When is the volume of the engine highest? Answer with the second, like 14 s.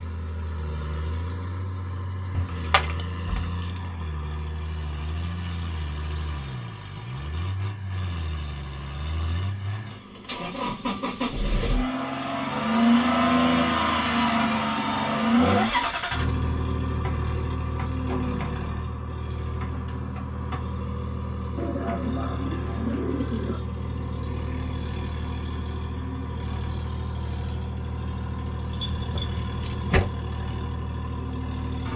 13 s.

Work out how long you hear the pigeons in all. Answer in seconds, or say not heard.
2 s.